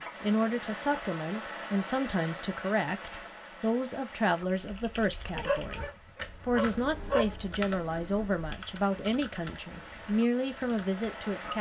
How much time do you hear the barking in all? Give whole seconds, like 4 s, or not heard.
2 s.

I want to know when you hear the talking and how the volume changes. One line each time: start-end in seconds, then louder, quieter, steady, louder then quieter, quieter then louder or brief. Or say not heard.
0.2-11.5 steady.